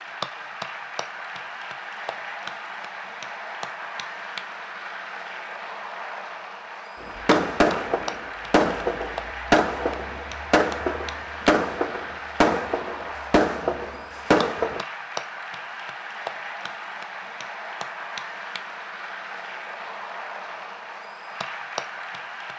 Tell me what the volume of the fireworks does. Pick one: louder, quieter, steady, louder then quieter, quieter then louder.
steady.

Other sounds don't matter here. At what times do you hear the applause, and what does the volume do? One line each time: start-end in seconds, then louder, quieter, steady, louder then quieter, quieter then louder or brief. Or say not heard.
0.0-22.5 steady.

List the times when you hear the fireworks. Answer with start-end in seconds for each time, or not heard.
7.0-14.8.